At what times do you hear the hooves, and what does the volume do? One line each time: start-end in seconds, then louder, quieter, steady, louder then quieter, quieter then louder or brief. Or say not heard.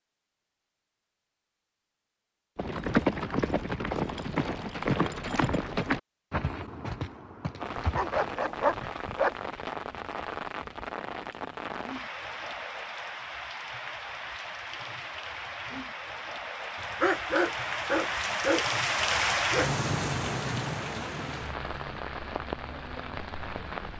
2.5-8.4 quieter.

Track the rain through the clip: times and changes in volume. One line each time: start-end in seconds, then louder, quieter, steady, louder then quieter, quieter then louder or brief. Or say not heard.
7.6-23.9 louder then quieter.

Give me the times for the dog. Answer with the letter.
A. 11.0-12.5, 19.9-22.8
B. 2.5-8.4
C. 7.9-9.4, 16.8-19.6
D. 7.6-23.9
C.